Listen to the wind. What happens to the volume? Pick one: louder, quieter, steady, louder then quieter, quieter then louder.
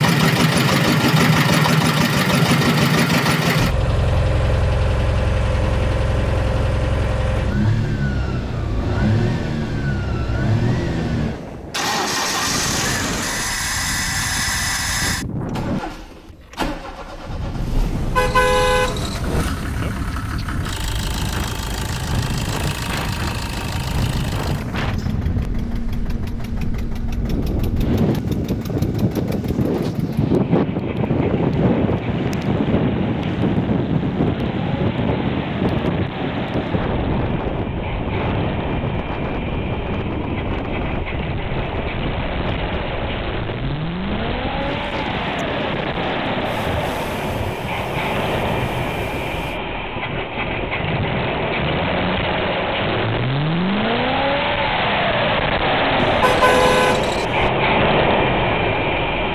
louder then quieter.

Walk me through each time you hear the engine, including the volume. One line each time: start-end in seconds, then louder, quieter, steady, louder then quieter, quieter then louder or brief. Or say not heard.
0.0-59.3 quieter then louder.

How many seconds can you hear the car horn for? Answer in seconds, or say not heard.
3 s.